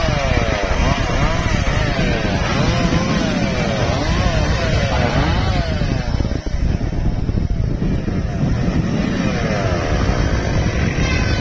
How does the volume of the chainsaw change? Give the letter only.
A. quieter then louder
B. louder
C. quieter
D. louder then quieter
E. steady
A.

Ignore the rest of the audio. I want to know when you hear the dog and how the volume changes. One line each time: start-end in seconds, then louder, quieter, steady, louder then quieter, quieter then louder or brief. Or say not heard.
not heard.